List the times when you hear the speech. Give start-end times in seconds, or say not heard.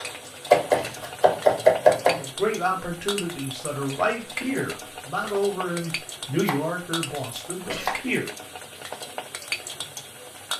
2.1-8.2.